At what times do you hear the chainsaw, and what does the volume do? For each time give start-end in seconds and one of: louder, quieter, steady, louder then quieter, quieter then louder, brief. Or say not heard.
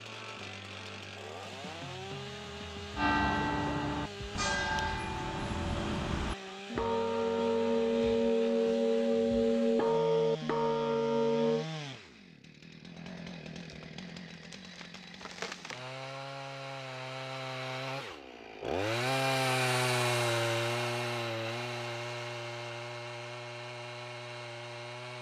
0.0-25.1 louder.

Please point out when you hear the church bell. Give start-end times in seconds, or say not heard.
3.0-11.7.